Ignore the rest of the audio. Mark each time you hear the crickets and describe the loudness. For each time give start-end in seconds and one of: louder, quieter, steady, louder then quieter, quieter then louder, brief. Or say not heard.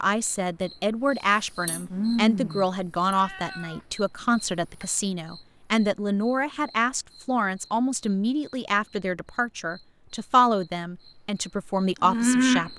0.2-12.7 quieter then louder.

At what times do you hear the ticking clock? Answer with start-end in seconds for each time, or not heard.
not heard.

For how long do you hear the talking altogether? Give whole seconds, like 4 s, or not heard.
13 s.